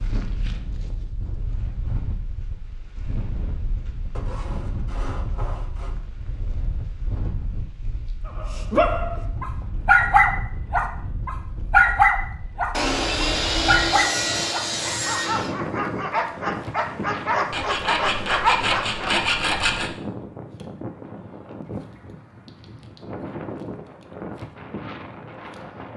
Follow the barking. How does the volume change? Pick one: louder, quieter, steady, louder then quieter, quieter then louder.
quieter then louder.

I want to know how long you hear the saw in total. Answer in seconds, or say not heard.
7 s.